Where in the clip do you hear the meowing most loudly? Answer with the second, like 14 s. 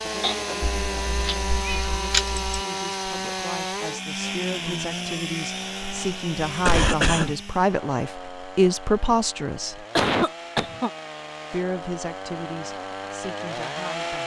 2 s.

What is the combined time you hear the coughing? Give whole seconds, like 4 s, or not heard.
3 s.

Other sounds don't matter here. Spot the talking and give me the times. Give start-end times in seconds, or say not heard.
0.0-9.8, 11.5-14.2.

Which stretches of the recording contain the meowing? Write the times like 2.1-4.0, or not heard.
0.6-2.6.